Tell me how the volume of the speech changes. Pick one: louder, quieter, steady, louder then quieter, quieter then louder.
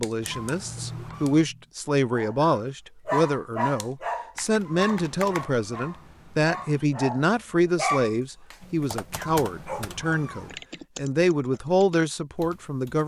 steady.